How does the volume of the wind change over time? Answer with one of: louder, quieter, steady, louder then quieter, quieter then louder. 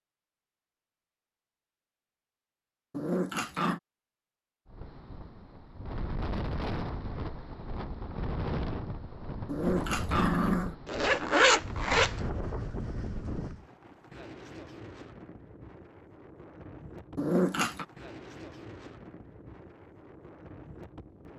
quieter.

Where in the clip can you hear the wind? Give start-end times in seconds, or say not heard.
4.7-21.3.